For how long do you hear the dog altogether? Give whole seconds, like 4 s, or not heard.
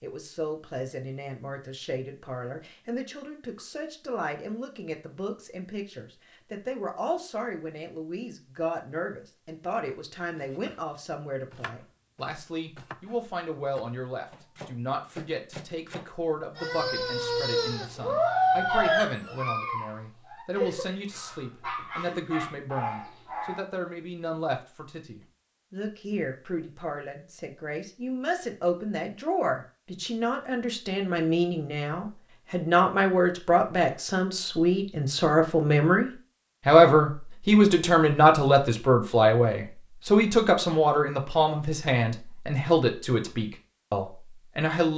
7 s.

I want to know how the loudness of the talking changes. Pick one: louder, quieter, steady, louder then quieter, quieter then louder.
louder.